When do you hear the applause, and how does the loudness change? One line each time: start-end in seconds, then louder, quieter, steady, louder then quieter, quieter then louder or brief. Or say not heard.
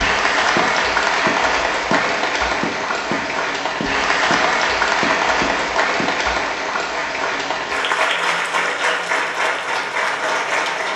0.0-10.9 steady.